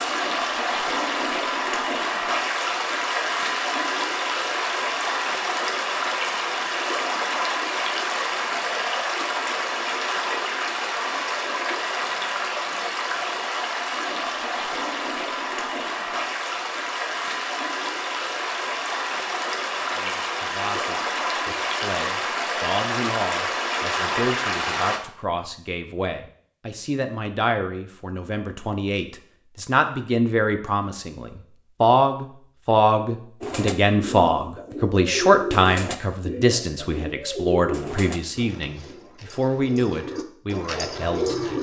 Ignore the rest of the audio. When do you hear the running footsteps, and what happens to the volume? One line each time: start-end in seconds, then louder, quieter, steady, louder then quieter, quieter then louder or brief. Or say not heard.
not heard.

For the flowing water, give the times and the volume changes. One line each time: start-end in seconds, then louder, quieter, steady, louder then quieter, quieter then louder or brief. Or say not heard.
0.0-25.0 steady.